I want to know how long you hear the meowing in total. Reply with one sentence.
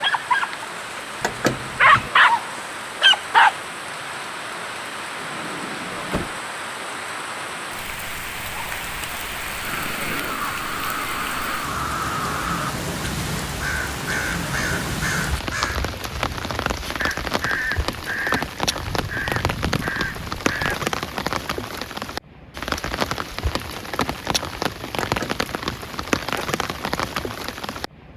The meowing can be heard for 2 seconds in total.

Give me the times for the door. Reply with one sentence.
The door can be heard from 5.2 to 6.3 s.